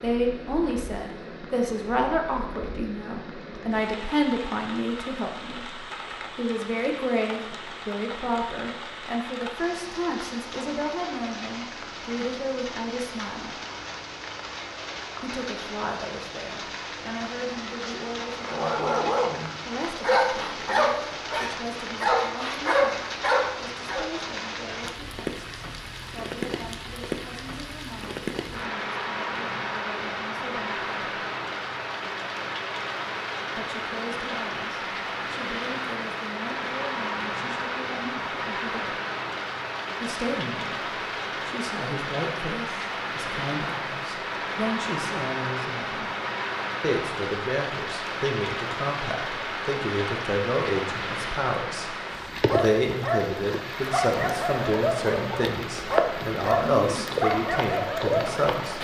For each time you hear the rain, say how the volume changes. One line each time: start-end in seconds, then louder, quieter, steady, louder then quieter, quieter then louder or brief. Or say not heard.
0.0-58.7 louder.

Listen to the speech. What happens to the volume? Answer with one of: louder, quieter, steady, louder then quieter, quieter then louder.
quieter then louder.